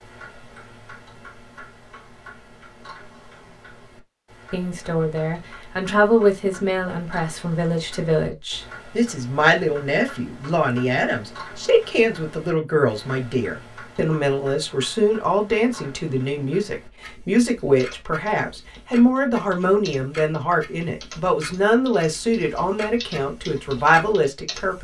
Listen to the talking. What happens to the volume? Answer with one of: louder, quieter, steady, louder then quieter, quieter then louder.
steady.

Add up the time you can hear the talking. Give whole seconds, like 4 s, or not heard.
20 s.